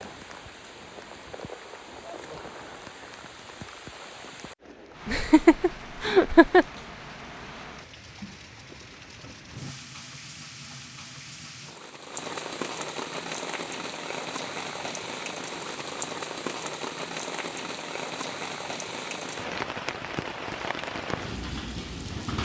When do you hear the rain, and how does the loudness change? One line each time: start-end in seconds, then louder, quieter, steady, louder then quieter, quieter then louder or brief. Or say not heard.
0.0-22.4 louder.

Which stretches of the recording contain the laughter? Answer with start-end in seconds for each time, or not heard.
5.0-6.7.